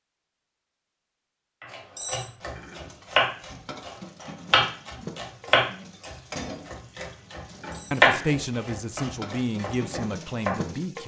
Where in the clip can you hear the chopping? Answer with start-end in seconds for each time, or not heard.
1.6-10.6.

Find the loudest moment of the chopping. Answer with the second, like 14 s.
8 s.